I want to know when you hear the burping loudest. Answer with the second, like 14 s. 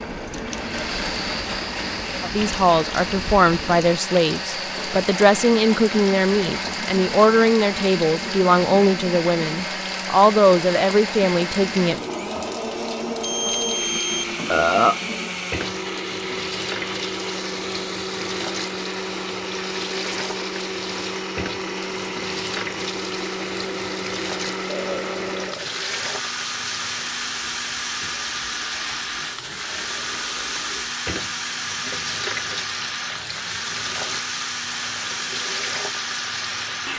15 s.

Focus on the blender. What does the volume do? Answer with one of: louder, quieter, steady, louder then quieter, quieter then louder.
steady.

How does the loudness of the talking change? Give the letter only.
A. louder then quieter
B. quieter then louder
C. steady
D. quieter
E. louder
C.